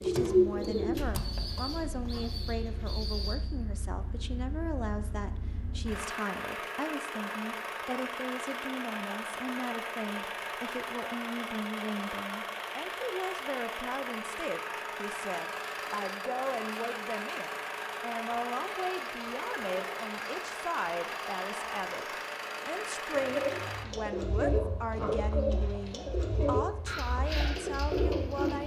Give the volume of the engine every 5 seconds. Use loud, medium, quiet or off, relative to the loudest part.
medium, loud, loud, loud, loud, medium.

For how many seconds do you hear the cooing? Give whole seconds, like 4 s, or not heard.
9 s.